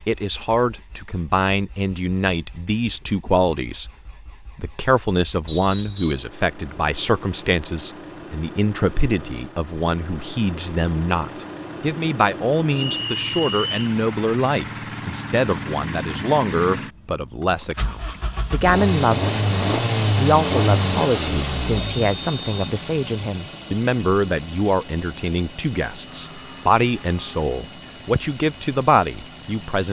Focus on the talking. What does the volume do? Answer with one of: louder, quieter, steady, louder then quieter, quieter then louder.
steady.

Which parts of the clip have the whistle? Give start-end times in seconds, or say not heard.
5.5-6.2, 12.8-13.8, 21.8-22.7.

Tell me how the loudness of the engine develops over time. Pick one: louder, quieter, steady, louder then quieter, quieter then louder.
louder then quieter.